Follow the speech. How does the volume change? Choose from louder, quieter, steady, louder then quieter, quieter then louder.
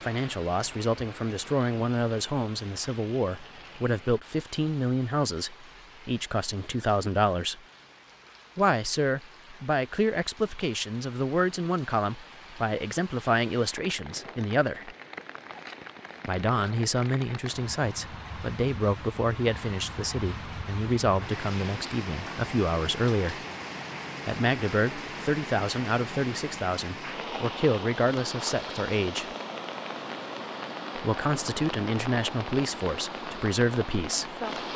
steady.